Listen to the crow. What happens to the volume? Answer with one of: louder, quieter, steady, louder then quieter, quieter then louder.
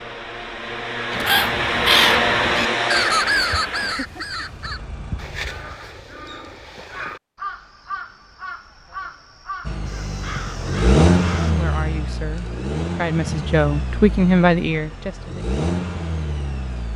quieter.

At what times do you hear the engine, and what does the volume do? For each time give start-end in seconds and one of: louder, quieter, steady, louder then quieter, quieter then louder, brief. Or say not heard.
0.0-5.8 louder then quieter
9.7-16.9 quieter then louder.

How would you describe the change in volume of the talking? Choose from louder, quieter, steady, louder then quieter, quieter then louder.
louder.